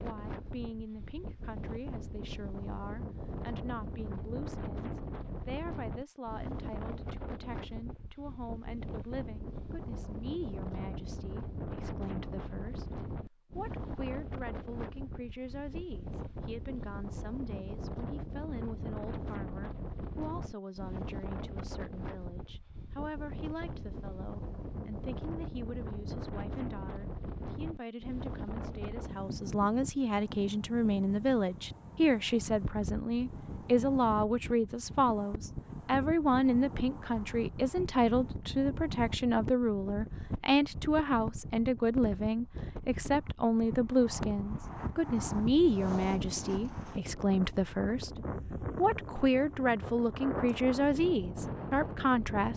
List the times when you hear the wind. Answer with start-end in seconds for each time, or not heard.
0.0-52.5.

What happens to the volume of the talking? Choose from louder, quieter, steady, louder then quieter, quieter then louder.
louder.